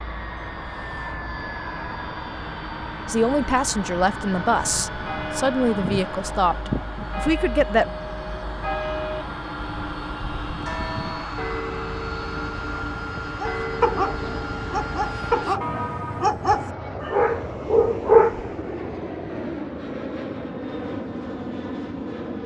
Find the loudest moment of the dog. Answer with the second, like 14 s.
18 s.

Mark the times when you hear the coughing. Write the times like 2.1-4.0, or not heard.
not heard.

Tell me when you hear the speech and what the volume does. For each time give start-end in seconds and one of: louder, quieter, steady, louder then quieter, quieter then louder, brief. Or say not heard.
3.0-7.9 steady.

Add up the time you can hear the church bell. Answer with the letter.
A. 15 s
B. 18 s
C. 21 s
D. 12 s
D.